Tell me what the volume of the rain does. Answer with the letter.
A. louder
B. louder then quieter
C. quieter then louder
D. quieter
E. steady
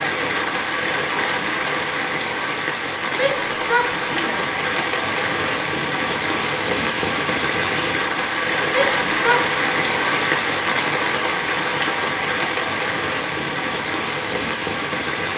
E.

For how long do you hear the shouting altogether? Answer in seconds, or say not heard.
2 s.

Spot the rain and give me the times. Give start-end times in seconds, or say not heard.
0.0-15.3.